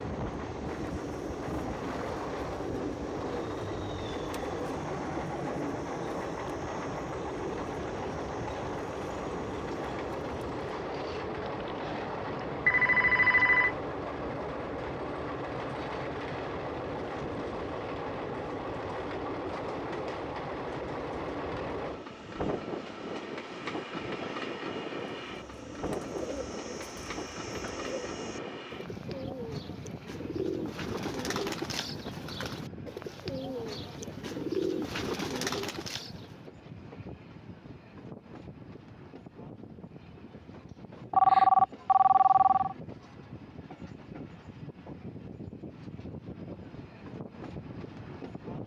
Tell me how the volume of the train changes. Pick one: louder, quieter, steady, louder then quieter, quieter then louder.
quieter.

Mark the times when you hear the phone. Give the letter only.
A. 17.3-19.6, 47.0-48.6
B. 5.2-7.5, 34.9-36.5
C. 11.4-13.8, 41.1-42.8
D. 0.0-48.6
C.